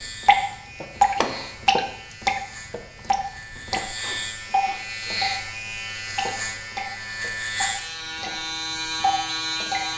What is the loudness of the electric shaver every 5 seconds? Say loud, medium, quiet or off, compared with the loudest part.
medium, loud.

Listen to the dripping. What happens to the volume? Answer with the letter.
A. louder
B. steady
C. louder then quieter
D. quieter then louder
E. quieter
D.